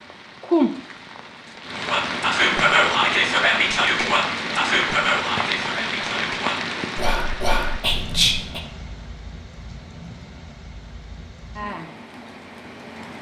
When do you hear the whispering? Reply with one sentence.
The whispering can be heard from 1.9 to 8.6 s.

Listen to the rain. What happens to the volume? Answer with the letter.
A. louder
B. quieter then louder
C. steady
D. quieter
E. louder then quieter
D.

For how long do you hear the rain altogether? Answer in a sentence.
The rain can be heard for 13 seconds in total.